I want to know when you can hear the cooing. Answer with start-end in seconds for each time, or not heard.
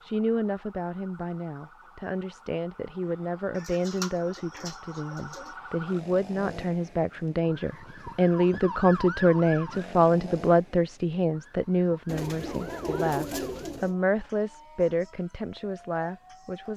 3.5-5.5, 12.1-13.9.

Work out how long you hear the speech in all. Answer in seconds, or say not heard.
17 s.